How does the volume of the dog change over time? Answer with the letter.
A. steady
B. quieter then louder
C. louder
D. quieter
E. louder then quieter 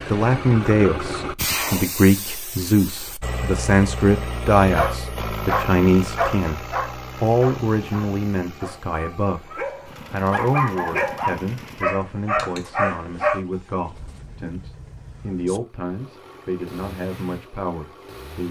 B.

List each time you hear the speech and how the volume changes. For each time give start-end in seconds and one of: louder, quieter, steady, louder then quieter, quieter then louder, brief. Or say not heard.
0.1-18.4 quieter.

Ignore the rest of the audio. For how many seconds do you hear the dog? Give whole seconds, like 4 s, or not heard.
9 s.